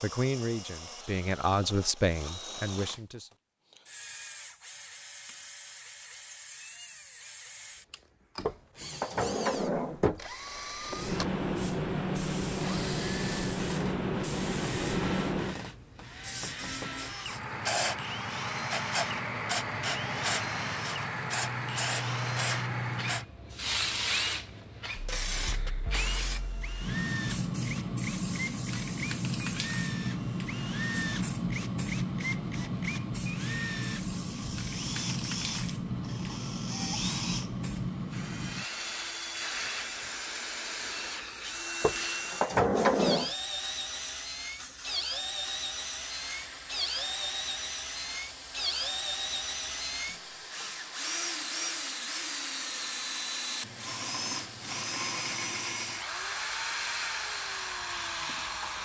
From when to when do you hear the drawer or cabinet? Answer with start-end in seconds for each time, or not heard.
8.4-10.2, 41.8-43.3.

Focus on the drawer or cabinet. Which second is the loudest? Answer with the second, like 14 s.
43 s.